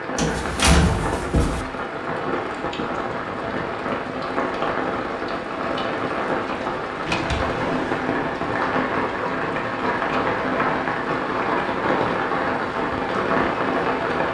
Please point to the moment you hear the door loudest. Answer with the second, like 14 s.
1 s.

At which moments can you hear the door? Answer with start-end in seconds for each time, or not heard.
0.1-1.6, 7.0-8.1, 10.0-10.8.